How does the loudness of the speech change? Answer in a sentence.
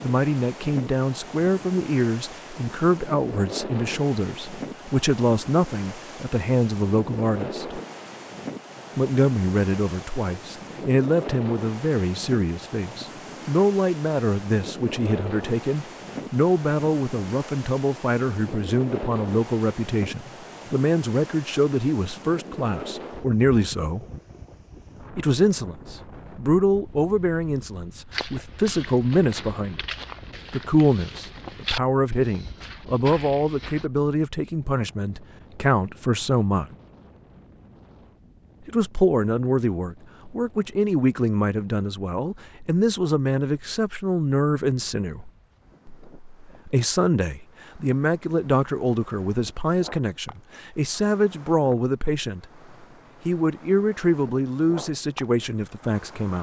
The volume of the speech stays about the same.